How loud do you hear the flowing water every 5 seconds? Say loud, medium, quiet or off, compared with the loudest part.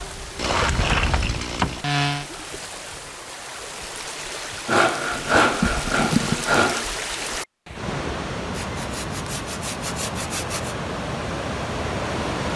medium, loud, loud.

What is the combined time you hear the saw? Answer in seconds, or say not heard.
6 s.